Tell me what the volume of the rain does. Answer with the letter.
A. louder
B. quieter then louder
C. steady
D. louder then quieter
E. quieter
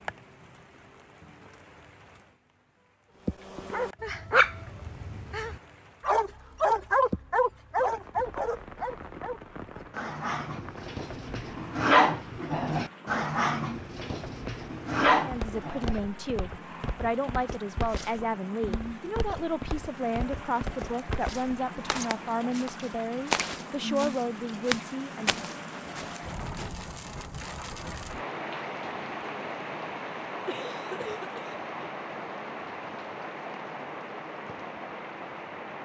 A.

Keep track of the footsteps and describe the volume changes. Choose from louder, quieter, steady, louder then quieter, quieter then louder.
louder.